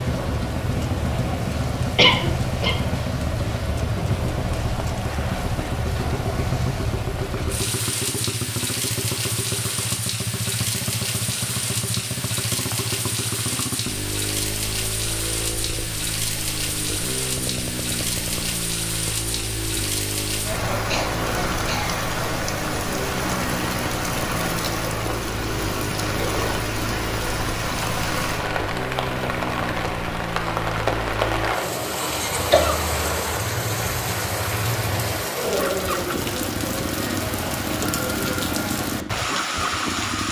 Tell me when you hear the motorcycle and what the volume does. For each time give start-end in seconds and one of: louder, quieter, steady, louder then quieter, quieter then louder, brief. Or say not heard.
0.0-40.2 steady.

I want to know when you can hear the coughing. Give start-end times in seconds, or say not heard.
1.9-2.8, 20.9-22.0, 32.4-33.0.